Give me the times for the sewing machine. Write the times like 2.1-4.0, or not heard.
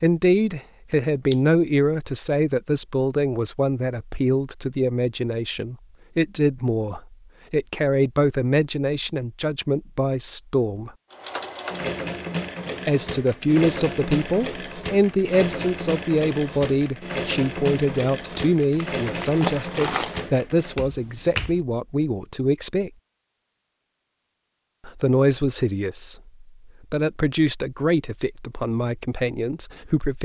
11.1-20.8.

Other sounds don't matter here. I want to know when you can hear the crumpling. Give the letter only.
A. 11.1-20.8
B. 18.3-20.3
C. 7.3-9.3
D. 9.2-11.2
B.